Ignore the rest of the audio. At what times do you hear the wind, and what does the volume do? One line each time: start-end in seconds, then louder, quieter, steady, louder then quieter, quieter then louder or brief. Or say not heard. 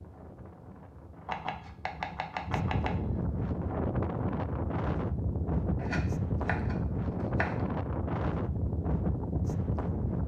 0.0-10.2 louder.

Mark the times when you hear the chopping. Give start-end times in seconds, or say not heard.
1.2-3.2, 5.8-7.7.